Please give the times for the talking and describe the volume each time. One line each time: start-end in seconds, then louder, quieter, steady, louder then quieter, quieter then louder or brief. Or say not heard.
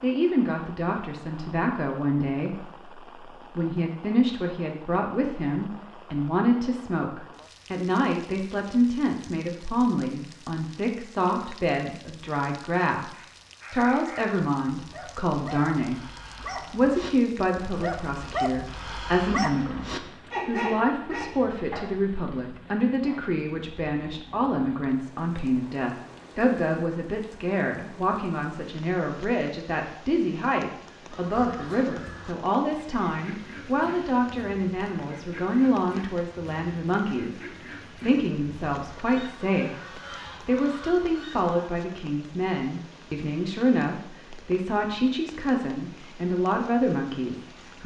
0.0-16.1 steady
16.7-47.8 steady.